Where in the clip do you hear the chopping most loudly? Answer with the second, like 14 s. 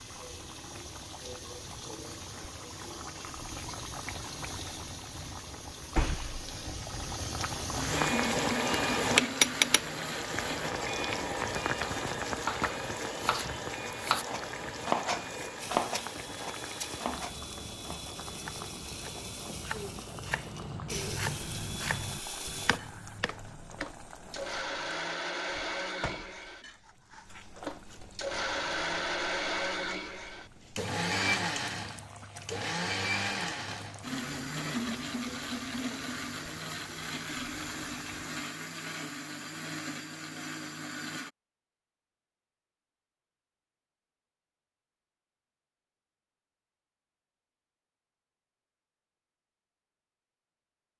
15 s.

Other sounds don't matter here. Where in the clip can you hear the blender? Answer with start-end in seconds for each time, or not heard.
7.8-10.8, 15.6-41.3.